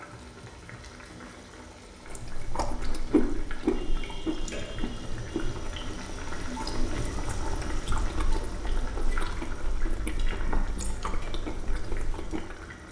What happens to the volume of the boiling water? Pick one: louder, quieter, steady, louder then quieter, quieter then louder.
louder then quieter.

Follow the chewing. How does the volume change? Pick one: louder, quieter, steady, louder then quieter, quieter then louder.
quieter.